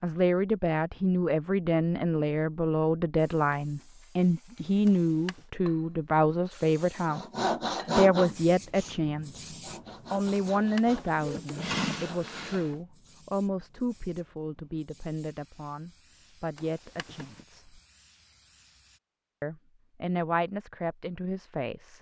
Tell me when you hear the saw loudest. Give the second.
8 s.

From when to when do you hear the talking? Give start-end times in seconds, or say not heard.
0.0-9.4, 10.1-17.8, 19.4-21.9.